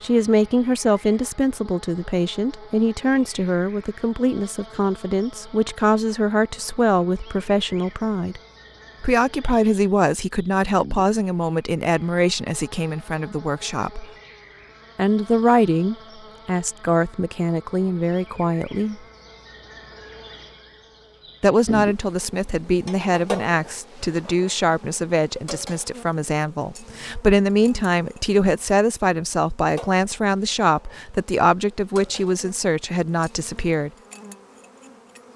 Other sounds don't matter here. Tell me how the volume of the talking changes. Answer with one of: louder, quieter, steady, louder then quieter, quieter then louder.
steady.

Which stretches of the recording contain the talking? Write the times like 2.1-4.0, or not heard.
0.0-8.4, 9.0-14.1, 14.9-19.0, 21.4-33.9.